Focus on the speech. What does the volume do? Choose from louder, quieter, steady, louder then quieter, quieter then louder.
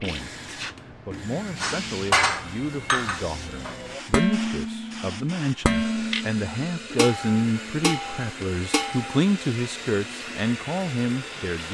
louder.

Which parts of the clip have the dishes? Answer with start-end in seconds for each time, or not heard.
1.6-9.2.